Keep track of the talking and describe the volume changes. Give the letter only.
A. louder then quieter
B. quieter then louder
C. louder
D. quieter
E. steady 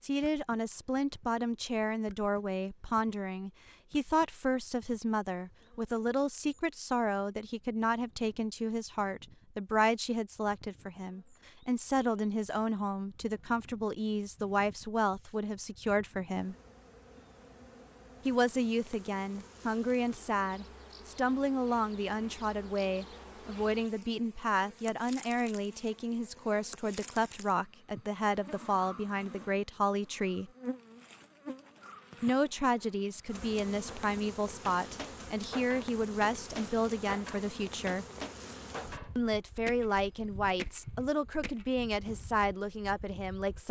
E.